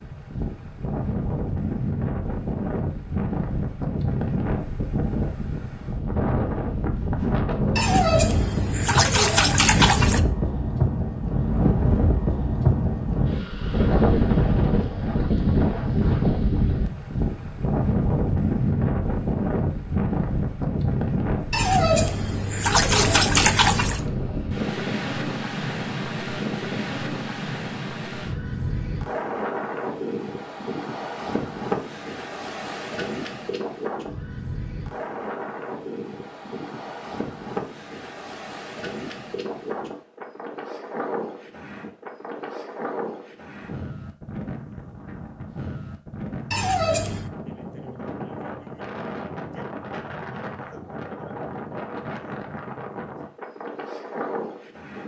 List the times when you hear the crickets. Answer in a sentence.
The crickets can't be heard in this clip.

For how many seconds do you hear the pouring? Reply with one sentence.
The pouring can be heard for 6 seconds in total.